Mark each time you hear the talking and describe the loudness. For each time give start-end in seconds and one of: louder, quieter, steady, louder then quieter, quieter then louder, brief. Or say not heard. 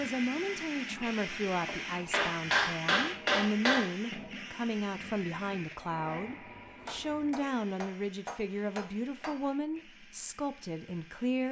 0.0-11.4 steady.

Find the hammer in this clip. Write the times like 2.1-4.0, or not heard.
1.6-3.9, 6.8-9.4.